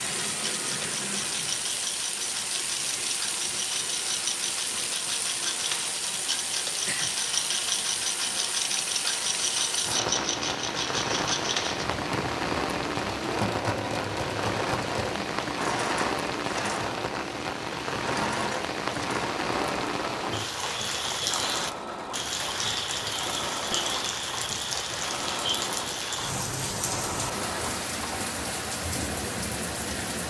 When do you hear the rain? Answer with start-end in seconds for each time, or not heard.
0.0-30.2.